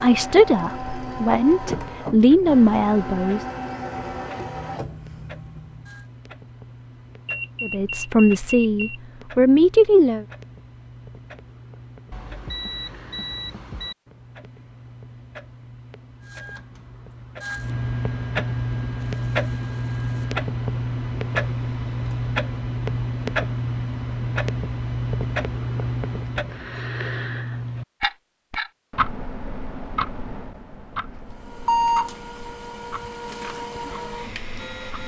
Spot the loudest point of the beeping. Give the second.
32 s.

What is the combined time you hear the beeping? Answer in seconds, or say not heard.
4 s.